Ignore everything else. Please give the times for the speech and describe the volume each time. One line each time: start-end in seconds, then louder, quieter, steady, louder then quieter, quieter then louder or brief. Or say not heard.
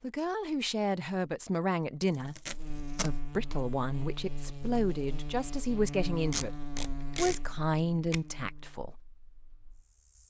0.0-9.0 steady.